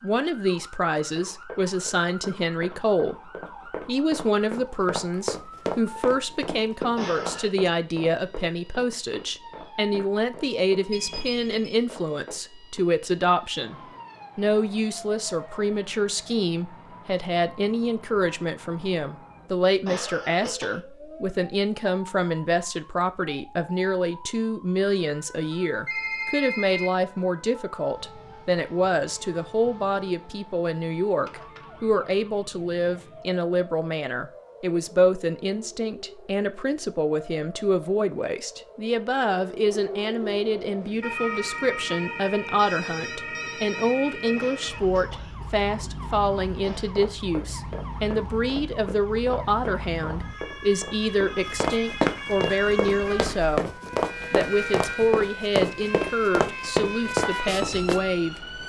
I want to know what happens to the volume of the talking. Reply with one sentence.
The volume of the talking stays about the same.